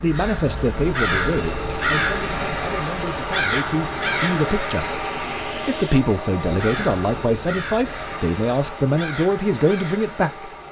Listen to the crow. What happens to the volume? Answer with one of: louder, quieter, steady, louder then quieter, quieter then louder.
quieter.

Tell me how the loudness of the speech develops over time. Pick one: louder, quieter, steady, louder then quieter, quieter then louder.
quieter then louder.